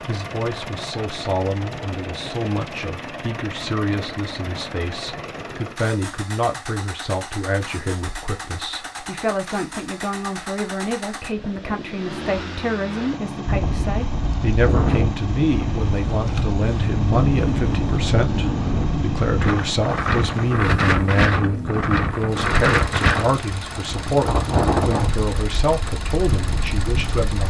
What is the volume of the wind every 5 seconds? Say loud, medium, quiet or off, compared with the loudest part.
off, off, loud, loud, loud, medium.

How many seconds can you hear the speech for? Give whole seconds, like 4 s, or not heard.
27 s.